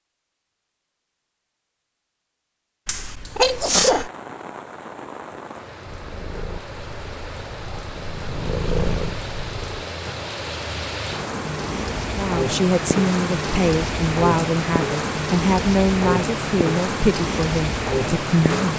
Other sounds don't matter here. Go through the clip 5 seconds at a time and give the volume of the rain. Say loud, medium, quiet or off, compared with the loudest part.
quiet, medium, loud, loud.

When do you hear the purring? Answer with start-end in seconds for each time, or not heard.
5.8-9.9.